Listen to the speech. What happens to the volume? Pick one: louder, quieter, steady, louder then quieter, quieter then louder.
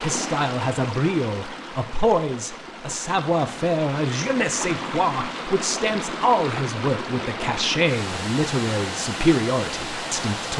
steady.